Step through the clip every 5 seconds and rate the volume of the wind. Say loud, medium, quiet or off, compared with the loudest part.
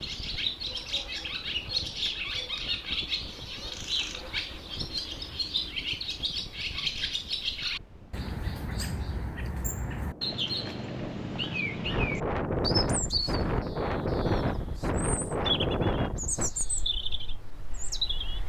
quiet, quiet, loud, loud.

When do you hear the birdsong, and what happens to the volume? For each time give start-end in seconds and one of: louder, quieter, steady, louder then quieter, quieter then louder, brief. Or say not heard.
0.0-18.4 steady.